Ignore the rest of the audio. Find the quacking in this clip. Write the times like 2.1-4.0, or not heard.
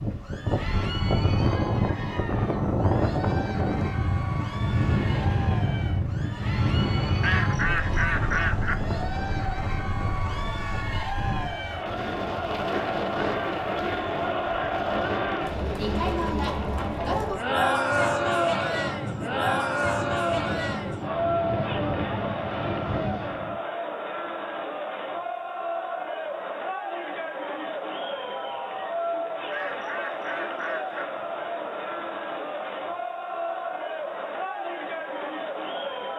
7.2-8.9, 29.5-31.2.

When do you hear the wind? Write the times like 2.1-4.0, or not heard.
0.0-23.6.